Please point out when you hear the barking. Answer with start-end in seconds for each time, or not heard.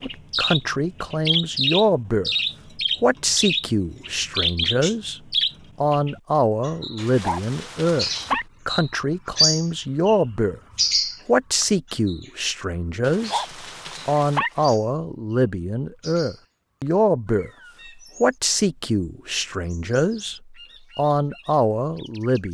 7.0-8.4, 13.1-14.8.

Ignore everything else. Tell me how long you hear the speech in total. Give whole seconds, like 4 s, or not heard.
20 s.